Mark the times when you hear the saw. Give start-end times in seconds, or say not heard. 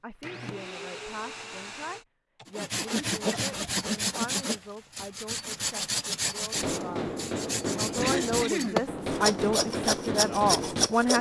2.5-11.1.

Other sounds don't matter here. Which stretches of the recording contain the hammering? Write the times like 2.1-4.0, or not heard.
6.5-11.1.